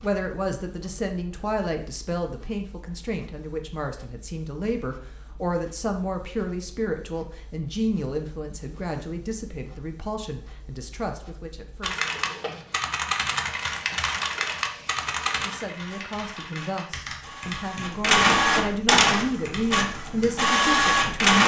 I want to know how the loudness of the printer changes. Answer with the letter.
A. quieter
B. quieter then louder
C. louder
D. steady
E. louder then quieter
C.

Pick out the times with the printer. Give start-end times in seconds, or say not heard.
0.0-21.4.